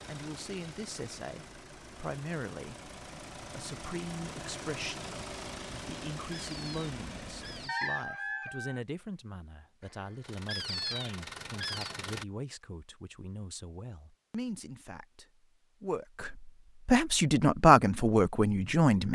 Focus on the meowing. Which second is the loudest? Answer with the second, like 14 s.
11 s.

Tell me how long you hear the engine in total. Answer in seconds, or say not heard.
10 s.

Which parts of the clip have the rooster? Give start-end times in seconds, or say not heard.
7.7-8.8.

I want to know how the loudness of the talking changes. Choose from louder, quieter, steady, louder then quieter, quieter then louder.
louder.